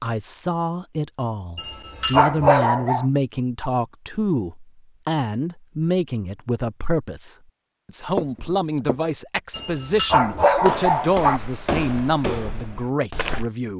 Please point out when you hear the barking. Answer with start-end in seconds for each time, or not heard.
1.6-3.0, 9.5-11.4.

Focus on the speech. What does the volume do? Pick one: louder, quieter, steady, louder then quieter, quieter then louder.
steady.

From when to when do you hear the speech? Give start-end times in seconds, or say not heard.
0.0-13.7.